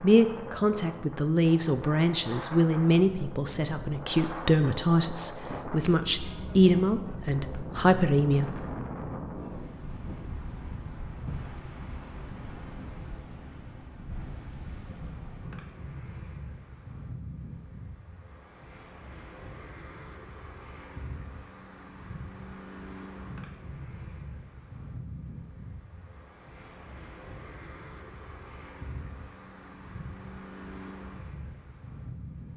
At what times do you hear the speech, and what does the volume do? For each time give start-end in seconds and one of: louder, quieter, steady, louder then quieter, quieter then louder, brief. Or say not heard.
0.0-8.7 steady.